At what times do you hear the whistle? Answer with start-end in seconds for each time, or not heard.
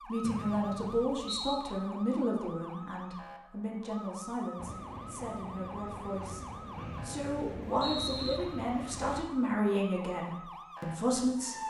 0.2-1.6, 6.8-8.4.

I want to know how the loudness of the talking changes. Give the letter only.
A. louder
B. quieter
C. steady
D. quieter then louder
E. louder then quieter
D.